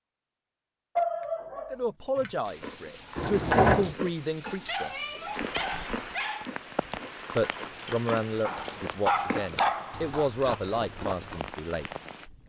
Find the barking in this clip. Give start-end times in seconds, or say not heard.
0.9-2.3, 4.5-6.5, 8.4-10.2.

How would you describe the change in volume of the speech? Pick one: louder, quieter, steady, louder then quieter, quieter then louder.
steady.